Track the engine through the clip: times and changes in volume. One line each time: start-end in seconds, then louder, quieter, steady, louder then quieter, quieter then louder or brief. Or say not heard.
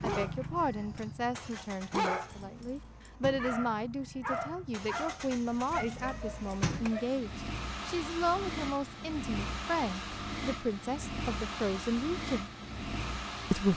0.0-13.7 louder.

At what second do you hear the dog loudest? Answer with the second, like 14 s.
2 s.